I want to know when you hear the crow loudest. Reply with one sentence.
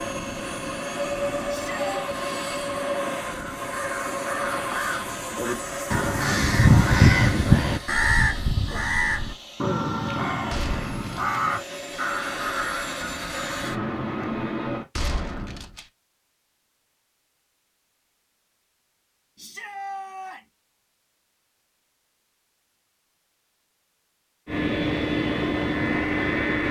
The volume of the crow peaks at 7 seconds.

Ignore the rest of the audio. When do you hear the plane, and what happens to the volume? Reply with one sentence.
You can hear the plane from 0.0 to 14.8 s, getting quieter then louder; and briefly from 24.4 to 26.6 s.